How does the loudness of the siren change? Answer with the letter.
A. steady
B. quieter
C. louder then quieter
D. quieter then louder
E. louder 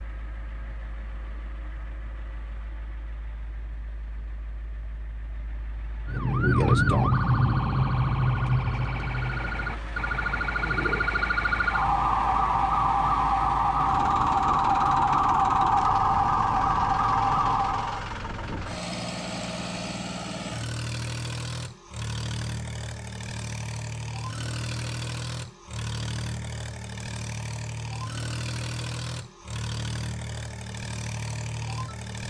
D.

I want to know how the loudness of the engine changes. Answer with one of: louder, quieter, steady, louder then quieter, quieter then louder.
louder.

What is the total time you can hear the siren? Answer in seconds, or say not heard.
12 s.